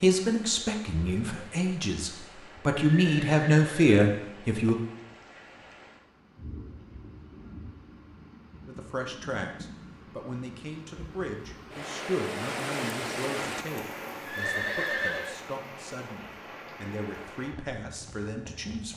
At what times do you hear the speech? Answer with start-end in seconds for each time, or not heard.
0.0-4.8, 8.7-18.9.